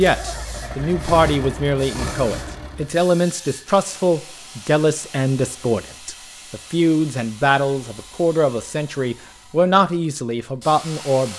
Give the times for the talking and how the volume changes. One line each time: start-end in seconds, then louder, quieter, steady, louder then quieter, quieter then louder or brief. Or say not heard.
0.0-11.3 steady.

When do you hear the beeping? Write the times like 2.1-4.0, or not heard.
not heard.